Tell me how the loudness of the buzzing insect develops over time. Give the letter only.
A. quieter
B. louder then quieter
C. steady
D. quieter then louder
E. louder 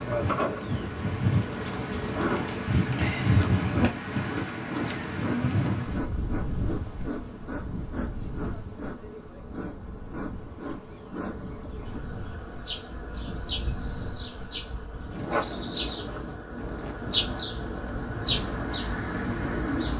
D.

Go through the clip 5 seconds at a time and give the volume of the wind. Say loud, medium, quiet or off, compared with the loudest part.
loud, medium, quiet, medium.